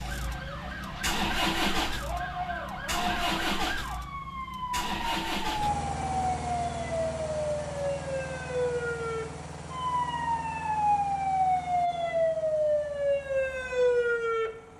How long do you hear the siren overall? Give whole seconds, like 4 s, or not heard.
15 s.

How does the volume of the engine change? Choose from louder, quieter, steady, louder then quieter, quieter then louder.
quieter.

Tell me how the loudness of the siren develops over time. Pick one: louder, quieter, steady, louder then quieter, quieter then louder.
louder.